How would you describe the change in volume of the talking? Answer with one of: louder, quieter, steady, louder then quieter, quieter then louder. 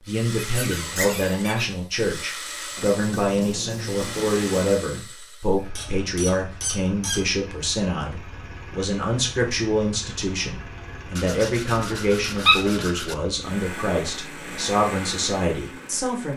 steady.